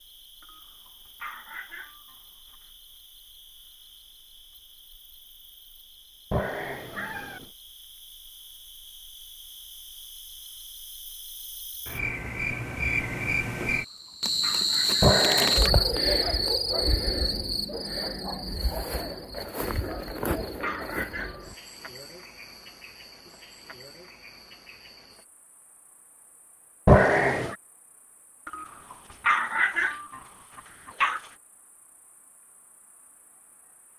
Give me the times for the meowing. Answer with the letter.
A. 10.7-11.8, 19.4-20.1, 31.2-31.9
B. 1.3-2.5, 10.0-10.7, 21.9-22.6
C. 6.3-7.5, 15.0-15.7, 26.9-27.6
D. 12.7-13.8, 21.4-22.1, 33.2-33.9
C.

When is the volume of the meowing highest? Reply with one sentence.
The loudest moment of the meowing is at 27 seconds.